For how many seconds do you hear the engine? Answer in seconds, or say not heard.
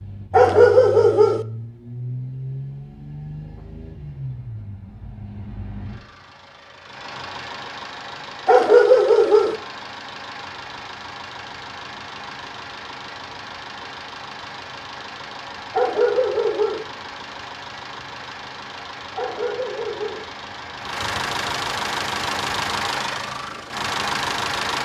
25 s.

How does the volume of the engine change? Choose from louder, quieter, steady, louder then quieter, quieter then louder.
louder.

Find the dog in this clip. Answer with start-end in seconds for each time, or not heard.
0.3-1.4, 8.4-9.6, 15.7-16.9, 19.1-20.2.